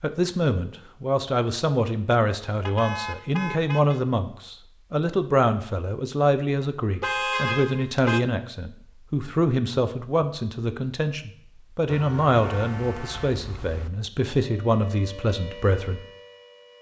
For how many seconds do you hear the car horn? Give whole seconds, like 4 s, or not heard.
5 s.